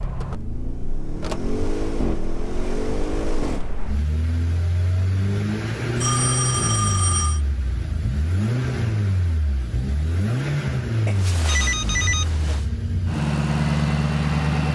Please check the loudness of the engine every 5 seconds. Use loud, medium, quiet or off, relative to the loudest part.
medium, loud, loud.